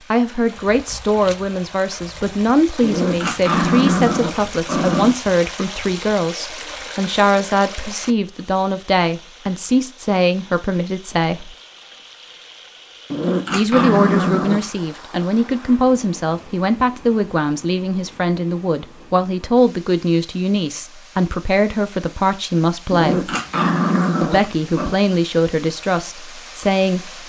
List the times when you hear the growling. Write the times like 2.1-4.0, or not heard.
2.8-5.2, 13.1-14.7, 22.9-25.0.